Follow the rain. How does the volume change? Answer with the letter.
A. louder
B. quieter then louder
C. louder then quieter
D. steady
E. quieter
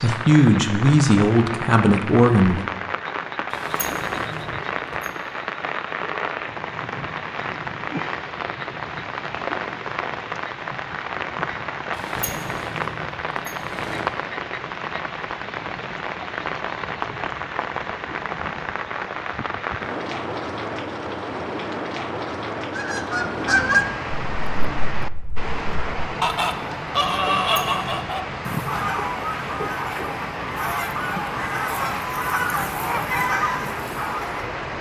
D.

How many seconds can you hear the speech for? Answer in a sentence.
You can hear the speech for 3 seconds altogether.